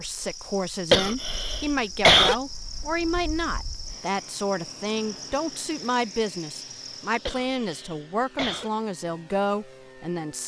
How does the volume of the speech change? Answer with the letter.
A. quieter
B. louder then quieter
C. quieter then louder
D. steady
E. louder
D.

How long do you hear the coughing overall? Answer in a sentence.
You can hear the coughing for 3 seconds altogether.